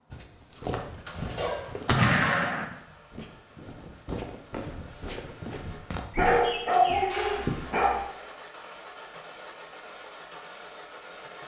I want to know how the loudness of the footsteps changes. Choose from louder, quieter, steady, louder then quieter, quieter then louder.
quieter then louder.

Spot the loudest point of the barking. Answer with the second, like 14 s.
7 s.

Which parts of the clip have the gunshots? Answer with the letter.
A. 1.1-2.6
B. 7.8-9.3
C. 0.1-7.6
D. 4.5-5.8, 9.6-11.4
A.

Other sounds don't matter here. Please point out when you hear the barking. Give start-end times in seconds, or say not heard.
1.1-2.5, 6.2-8.0.